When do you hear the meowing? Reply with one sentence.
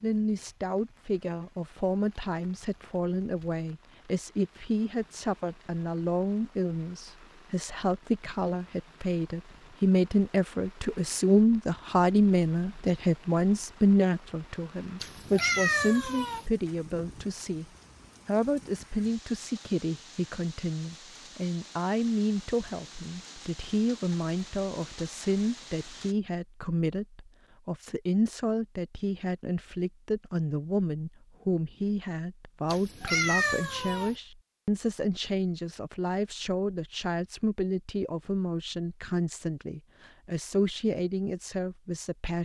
The meowing can be heard from 15.0 to 16.4 s and from 32.7 to 34.1 s.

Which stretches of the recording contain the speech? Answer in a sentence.
You can hear the speech from 0.0 to 17.6 s and from 18.2 to 42.4 s.